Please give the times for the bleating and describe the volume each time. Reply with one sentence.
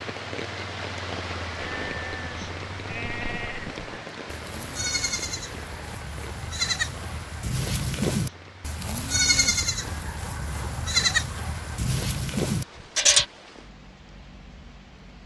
You can hear the bleating from 1.6 to 13.2 s, getting louder.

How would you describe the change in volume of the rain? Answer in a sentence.
The volume of the rain goes down.